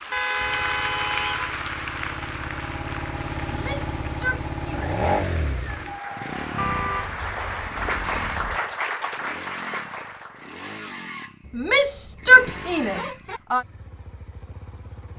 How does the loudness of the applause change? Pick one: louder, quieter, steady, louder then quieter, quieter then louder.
quieter then louder.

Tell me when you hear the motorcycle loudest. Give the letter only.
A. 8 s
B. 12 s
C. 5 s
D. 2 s
C.